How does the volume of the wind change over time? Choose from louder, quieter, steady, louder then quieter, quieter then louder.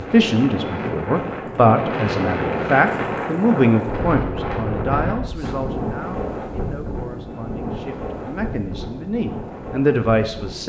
quieter.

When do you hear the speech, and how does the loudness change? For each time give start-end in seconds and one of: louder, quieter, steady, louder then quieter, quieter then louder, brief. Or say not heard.
0.0-10.6 quieter then louder.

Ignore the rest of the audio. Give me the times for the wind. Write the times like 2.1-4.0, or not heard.
0.0-10.6.